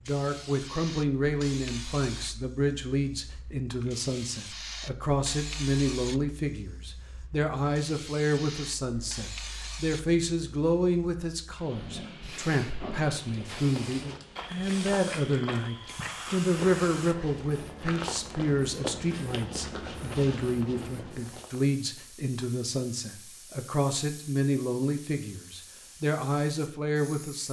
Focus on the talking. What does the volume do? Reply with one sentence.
The volume of the talking stays about the same.